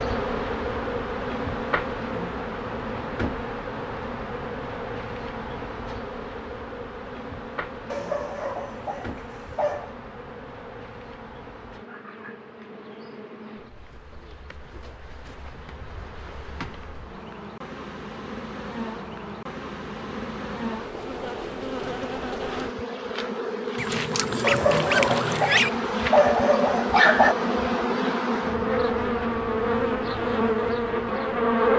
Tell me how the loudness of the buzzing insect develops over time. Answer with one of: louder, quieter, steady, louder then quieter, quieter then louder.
quieter then louder.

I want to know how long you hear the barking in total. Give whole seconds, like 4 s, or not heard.
5 s.